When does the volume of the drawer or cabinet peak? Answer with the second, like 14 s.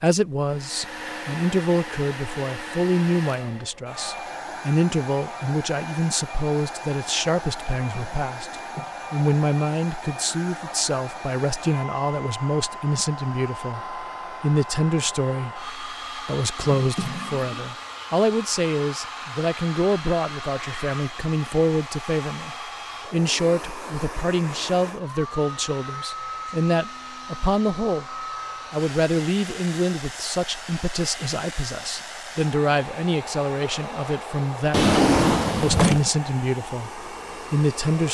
35 s.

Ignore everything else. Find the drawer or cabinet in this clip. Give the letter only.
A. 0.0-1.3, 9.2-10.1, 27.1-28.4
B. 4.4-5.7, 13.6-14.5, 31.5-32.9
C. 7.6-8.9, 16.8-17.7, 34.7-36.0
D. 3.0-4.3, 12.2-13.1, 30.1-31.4
C.